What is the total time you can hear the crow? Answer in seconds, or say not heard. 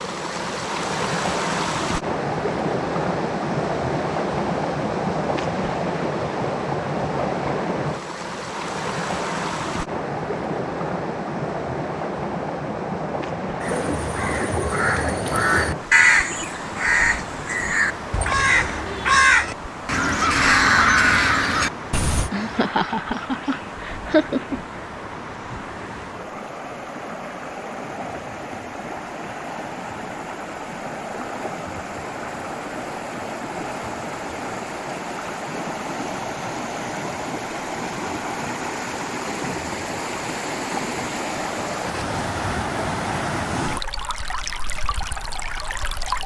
9 s.